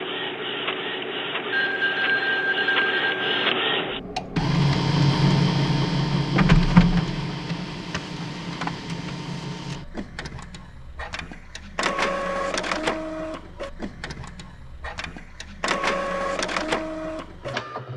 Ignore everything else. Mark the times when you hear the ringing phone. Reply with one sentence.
You can hear the ringing phone from 1.5 to 3.5 s.